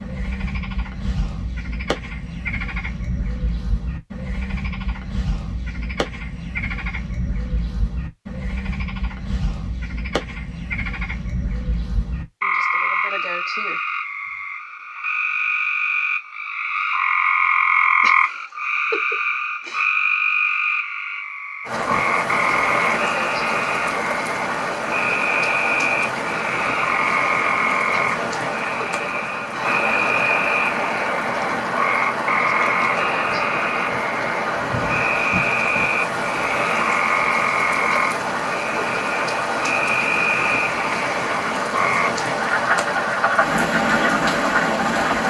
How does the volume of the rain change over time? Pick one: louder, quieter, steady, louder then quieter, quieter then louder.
steady.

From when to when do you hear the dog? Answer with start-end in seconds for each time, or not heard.
not heard.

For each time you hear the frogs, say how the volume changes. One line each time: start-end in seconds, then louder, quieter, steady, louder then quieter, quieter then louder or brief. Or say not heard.
0.0-45.2 louder.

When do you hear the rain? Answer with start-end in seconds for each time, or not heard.
21.6-45.2.